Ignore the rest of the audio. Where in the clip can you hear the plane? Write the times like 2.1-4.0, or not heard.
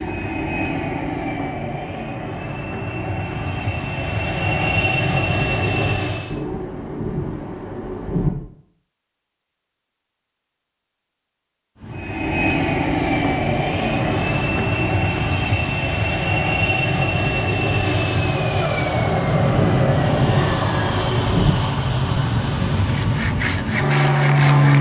0.0-6.4, 11.8-24.7.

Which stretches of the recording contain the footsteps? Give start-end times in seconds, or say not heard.
not heard.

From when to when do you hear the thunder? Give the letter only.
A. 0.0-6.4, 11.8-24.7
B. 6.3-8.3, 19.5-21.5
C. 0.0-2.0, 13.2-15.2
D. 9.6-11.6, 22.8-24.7
B.